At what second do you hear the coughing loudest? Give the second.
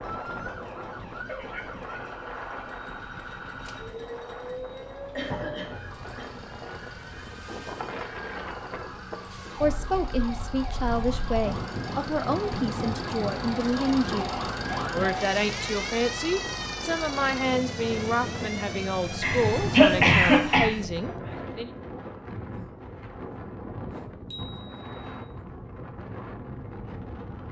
20 s.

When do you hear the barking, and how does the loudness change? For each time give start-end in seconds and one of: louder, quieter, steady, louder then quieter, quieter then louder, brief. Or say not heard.
not heard.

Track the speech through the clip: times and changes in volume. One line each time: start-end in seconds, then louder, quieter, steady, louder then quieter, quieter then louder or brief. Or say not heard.
9.6-21.7 steady.